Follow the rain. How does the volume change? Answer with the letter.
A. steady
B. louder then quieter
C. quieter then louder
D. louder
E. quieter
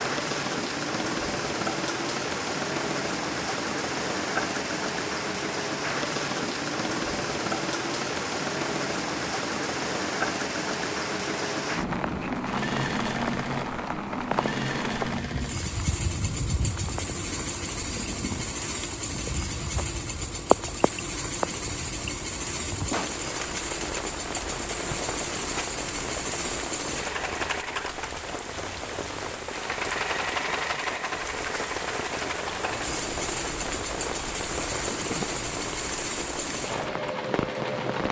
A.